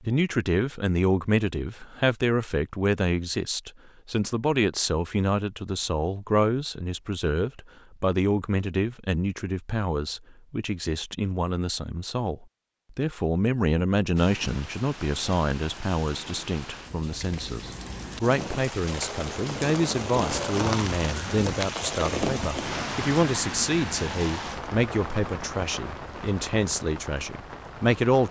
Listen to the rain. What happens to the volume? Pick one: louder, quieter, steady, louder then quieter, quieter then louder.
louder then quieter.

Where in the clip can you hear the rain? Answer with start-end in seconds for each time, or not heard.
14.2-28.2.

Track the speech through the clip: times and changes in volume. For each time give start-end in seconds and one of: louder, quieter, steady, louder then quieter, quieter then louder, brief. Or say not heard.
0.0-28.2 steady.